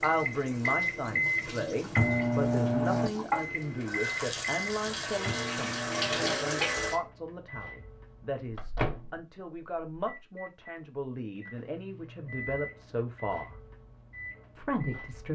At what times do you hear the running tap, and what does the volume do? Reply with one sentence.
You can hear the running tap from 0.0 to 7.0 s, getting louder.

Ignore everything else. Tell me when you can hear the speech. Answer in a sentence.
The speech can be heard from 0.0 to 13.6 s and from 14.6 to 15.3 s.